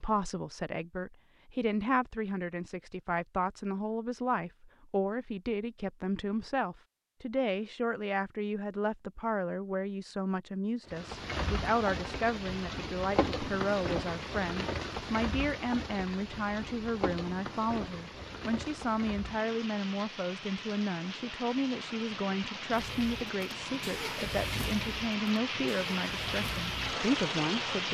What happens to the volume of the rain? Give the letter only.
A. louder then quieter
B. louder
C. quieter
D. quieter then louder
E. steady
D.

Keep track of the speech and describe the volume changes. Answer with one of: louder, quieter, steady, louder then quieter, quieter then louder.
steady.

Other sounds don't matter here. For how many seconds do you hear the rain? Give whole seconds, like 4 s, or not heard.
17 s.